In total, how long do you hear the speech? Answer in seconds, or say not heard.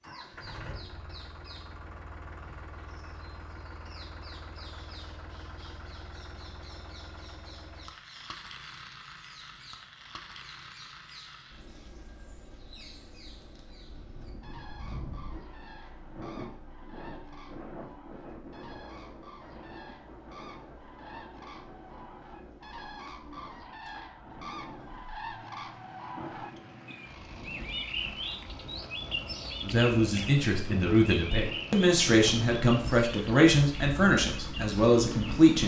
6 s.